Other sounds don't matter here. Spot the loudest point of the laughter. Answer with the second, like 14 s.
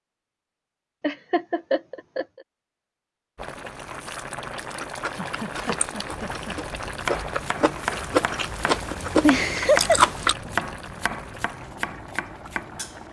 10 s.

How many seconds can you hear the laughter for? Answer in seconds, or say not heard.
4 s.